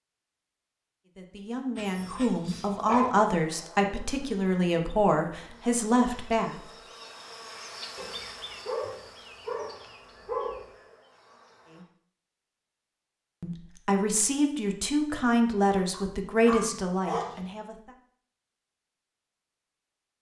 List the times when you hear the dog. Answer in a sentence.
The dog can be heard from 1.8 to 3.1 s, from 8.0 to 10.7 s and from 15.9 to 17.4 s.